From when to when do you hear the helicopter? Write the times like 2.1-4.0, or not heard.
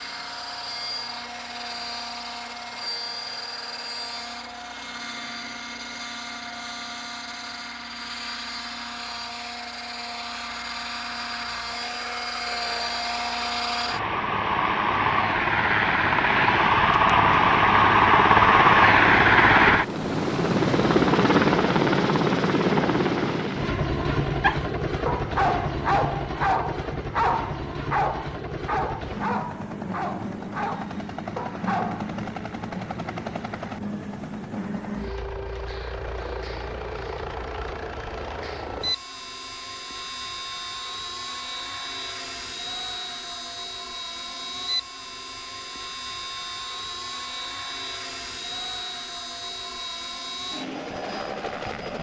0.0-51.9.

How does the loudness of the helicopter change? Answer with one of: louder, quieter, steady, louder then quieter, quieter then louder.
louder then quieter.